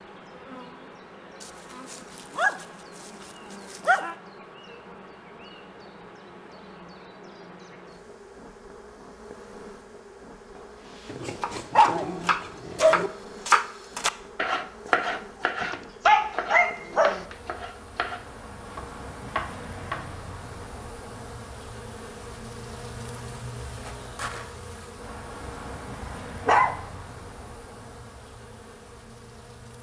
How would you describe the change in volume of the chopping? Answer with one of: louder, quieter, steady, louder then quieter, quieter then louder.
louder then quieter.